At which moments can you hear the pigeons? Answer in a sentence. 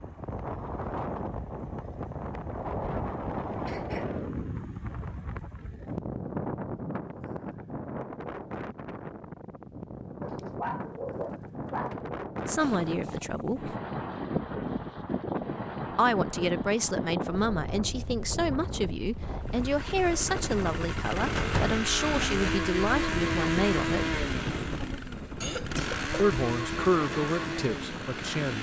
The pigeons can't be heard in this clip.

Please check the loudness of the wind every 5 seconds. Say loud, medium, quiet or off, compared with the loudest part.
loud, loud, loud, loud, loud, medium.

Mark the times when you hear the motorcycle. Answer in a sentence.
You can hear the motorcycle from 19.4 to 28.5 s.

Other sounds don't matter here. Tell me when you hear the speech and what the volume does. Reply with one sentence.
The speech can be heard briefly from 12.4 to 13.8 s; from 15.9 to 24.2 s, at a steady volume; and briefly from 26.1 to 28.5 s.